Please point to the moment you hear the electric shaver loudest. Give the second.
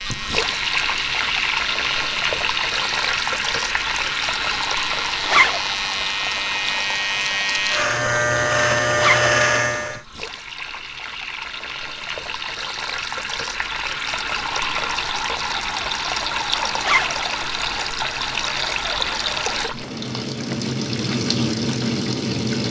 9 s.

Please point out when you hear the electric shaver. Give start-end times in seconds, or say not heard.
0.0-10.1.